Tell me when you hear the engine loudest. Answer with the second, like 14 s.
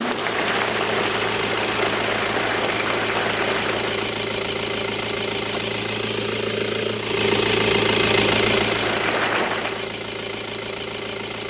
8 s.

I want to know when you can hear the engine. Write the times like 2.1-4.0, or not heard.
0.0-11.4.